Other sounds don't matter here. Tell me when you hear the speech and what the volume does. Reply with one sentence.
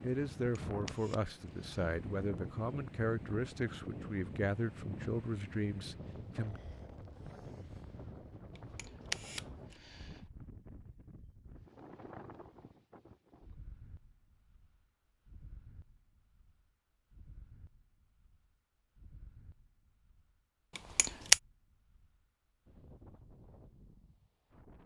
You can hear the speech from 0.0 to 6.6 s, at a steady volume.